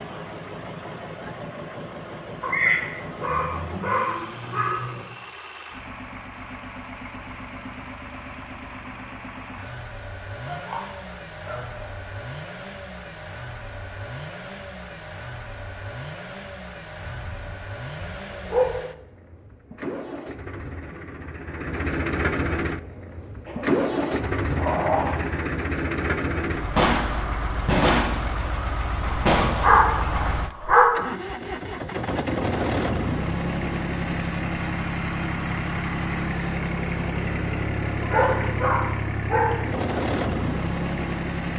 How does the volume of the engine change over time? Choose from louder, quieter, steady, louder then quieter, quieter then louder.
louder.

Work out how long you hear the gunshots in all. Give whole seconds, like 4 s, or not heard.
3 s.